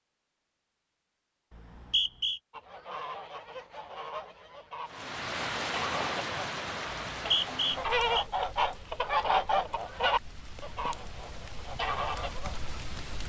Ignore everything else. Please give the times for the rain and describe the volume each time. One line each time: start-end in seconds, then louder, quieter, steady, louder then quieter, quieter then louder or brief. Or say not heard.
4.8-13.2 quieter then louder.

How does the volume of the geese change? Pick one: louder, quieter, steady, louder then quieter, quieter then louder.
louder then quieter.